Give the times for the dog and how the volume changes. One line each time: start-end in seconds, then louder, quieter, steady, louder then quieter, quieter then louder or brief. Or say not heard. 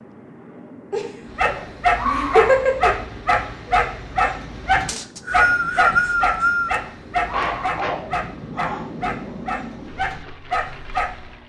1.4-11.2 quieter.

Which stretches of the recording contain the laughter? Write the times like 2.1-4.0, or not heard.
0.9-2.9, 7.3-8.8.